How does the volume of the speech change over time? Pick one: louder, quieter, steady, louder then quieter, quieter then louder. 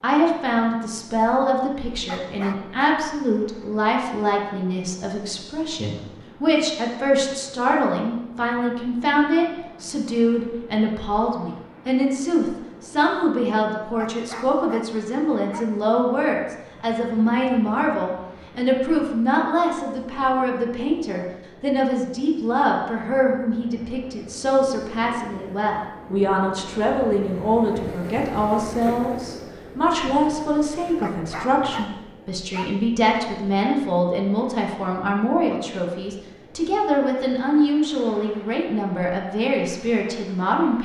steady.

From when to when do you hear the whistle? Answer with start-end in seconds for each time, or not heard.
not heard.